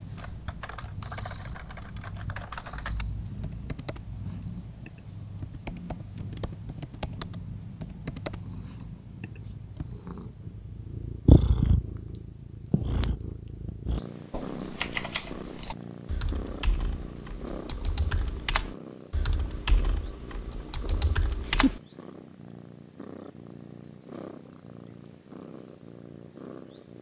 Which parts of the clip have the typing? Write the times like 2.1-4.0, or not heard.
0.1-9.9, 14.3-21.8.